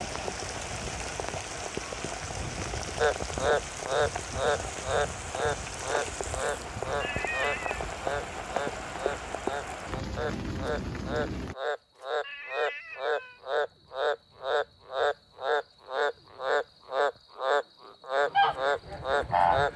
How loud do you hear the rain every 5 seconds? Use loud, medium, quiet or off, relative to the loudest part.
loud, loud, loud, off.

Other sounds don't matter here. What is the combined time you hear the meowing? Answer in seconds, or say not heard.
2 s.